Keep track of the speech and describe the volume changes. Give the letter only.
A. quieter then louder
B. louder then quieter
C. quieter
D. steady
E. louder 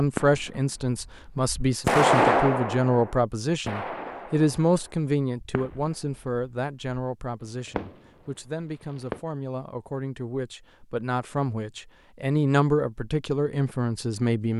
A.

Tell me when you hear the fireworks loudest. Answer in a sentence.
The volume of the fireworks peaks at 2 seconds.